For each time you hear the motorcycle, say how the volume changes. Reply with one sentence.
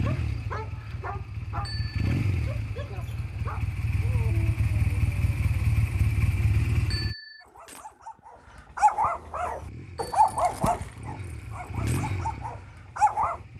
The motorcycle can be heard from 0.0 to 7.2 s, getting louder; and from 9.4 to 13.5 s, getting louder then quieter.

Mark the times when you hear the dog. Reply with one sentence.
You can hear the dog from 0.0 to 5.5 s and from 7.4 to 13.4 s.